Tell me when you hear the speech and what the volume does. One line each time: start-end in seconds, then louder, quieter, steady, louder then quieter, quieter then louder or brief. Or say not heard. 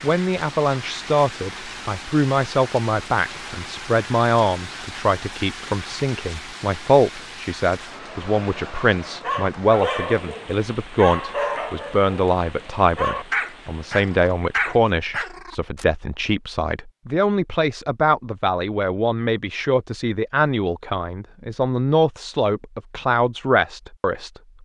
0.0-24.3 steady.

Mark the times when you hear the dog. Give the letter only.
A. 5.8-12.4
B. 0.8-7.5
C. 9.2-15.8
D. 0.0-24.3
C.